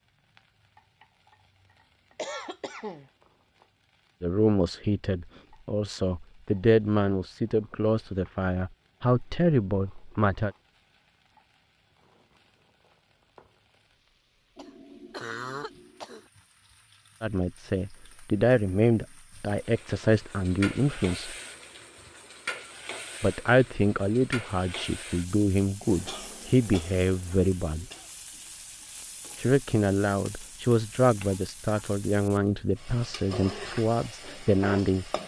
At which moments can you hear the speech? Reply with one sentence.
The speech can be heard from 4.2 to 10.5 s, from 17.2 to 21.4 s, from 23.2 to 27.9 s and from 29.4 to 35.1 s.